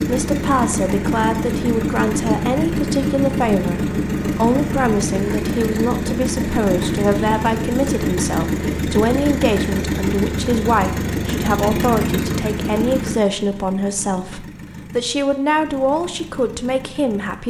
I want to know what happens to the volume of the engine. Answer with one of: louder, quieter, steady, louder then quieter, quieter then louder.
quieter.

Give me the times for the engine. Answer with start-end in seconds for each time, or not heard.
0.0-17.4.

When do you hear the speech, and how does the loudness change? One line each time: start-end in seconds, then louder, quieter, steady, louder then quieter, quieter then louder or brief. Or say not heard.
0.0-17.4 steady.